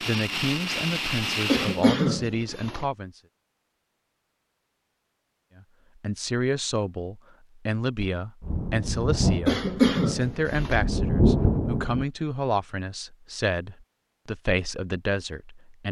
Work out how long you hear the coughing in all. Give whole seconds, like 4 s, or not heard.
3 s.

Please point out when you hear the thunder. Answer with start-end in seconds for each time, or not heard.
8.4-12.1.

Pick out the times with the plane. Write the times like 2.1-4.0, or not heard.
0.0-1.9.